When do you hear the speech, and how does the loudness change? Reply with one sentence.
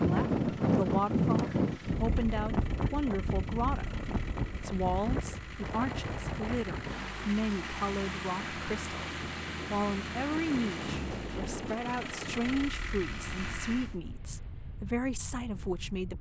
You can hear the speech from 0.0 to 16.1 s, at a steady volume.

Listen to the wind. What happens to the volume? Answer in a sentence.
The loudness of the wind goes down.